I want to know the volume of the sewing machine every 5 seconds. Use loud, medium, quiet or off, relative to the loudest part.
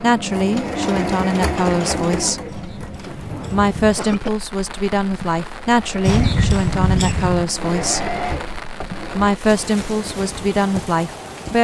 loud, loud, off.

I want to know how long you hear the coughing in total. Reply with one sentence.
You can hear the coughing for 3 seconds altogether.